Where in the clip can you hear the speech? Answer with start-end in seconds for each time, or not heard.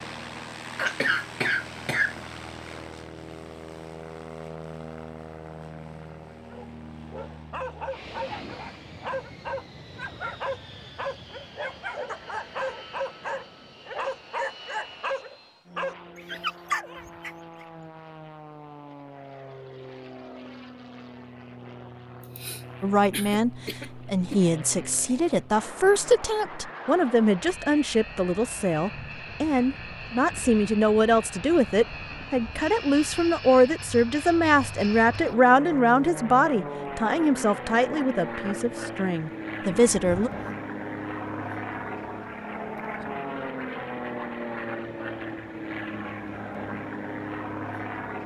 22.8-40.3.